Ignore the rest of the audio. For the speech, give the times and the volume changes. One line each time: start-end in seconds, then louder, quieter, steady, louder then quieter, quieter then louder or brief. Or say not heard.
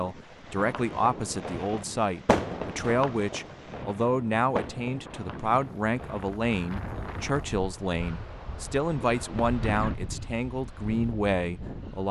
0.0-12.0 steady.